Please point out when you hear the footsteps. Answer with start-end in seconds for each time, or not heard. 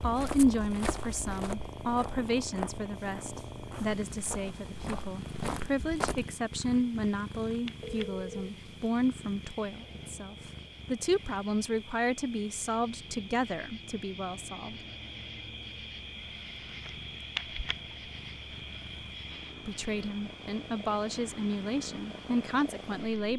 0.0-6.2.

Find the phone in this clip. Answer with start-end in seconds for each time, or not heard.
7.8-8.6.